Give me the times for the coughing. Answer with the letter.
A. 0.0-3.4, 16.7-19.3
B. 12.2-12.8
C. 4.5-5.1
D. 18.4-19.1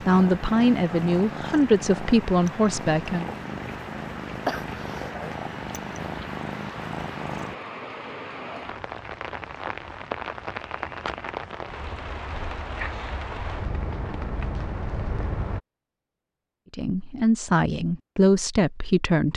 C.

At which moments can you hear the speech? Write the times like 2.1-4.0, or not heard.
0.0-3.4, 16.7-19.3.